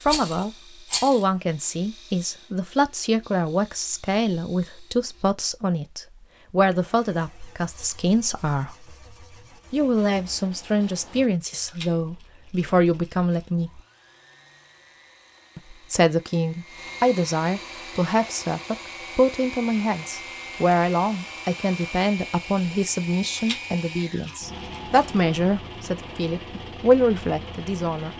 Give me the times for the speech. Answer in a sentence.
You can hear the speech from 0.0 to 8.8 s, from 9.7 to 13.8 s and from 15.6 to 28.1 s.